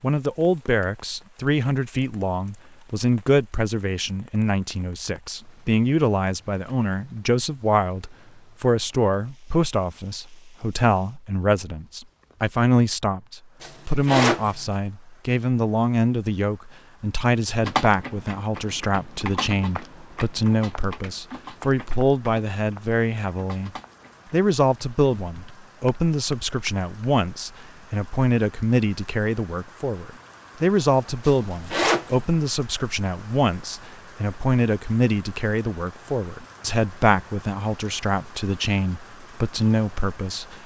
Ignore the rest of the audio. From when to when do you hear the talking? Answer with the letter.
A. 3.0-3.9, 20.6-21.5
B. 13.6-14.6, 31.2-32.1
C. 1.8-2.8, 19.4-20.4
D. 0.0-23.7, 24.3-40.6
D.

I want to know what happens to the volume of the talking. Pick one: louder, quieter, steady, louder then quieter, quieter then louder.
steady.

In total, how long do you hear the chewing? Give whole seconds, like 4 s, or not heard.
not heard.